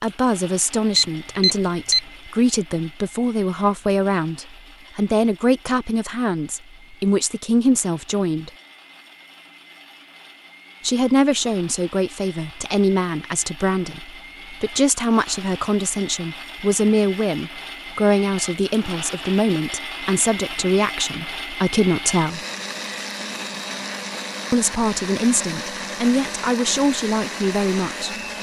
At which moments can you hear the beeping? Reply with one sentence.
You can hear the beeping from 0.9 to 2.0 s.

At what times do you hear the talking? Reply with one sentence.
The talking can be heard from 0.0 to 8.5 s, from 10.8 to 22.4 s and from 24.5 to 28.1 s.